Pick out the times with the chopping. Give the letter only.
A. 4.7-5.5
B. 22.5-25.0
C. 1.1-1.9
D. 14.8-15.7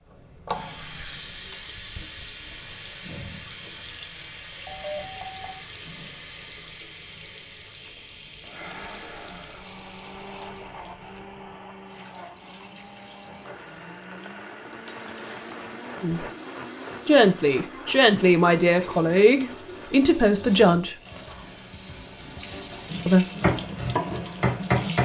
B.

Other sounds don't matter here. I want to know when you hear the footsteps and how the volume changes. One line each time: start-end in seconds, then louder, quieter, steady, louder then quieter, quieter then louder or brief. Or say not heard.
not heard.